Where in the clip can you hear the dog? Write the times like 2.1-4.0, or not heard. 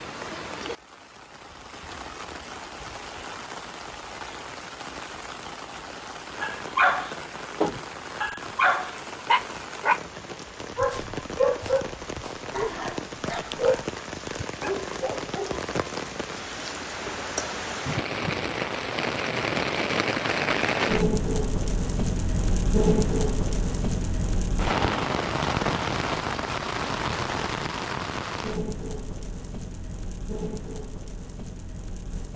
6.4-15.6.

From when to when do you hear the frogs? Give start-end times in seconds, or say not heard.
not heard.